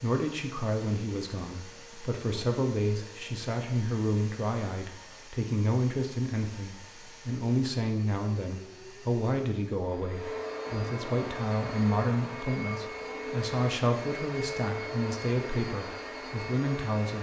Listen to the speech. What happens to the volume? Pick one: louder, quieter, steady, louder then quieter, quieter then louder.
steady.